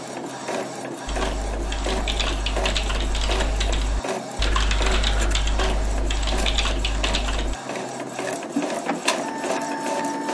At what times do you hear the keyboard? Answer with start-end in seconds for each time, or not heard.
1.1-7.5.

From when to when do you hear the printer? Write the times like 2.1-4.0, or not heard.
0.0-10.2.